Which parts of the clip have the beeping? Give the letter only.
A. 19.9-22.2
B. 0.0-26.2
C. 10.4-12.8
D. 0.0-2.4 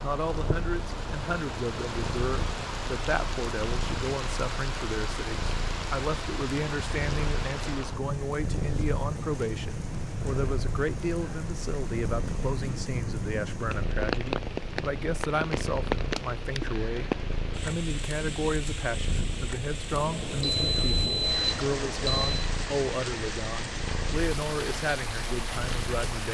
A.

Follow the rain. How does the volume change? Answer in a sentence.
The volume of the rain stays about the same.